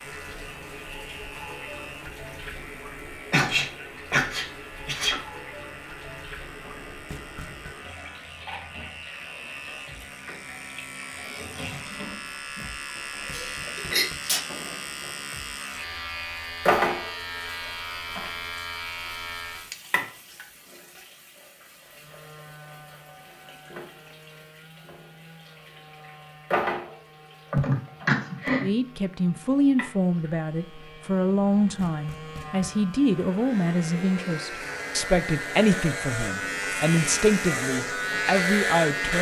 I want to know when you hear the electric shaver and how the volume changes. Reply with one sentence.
The electric shaver can be heard from 0.0 to 19.8 s, getting louder; and from 21.7 to 39.1 s, getting louder.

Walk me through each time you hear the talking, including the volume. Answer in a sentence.
You can hear the talking from 28.6 to 39.1 s, at a steady volume.